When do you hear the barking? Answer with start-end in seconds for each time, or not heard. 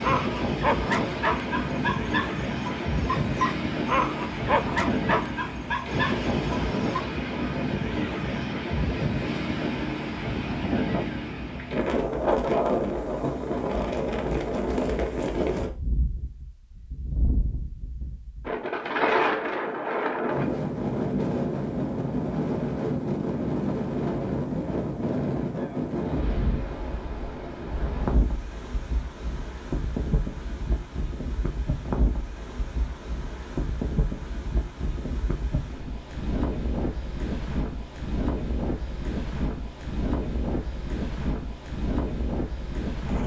0.0-7.0.